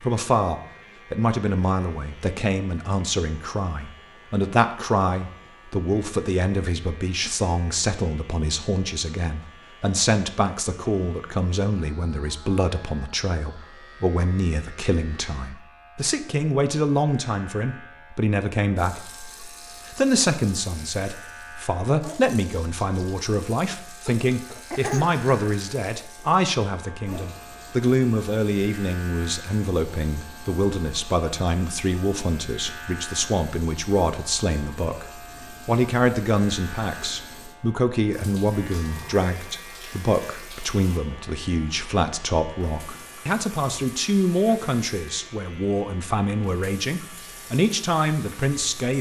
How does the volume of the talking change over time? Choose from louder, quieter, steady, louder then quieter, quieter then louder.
steady.